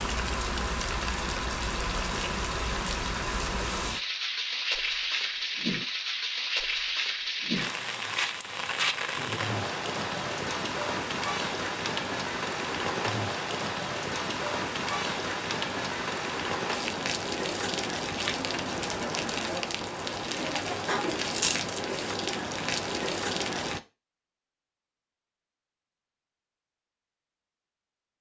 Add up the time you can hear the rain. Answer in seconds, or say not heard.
24 s.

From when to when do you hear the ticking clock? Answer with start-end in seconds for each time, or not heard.
not heard.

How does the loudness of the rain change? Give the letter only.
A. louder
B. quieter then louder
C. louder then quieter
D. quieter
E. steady
E.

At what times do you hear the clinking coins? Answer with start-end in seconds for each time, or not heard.
21.1-21.8.